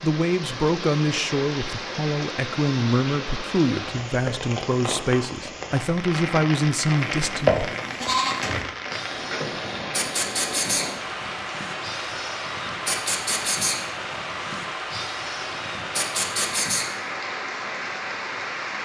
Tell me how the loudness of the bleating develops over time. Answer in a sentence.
The volume of the bleating goes down, then up.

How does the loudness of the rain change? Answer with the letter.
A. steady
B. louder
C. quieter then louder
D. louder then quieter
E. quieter
A.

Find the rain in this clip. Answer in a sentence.
You can hear the rain from 0.0 to 18.8 s.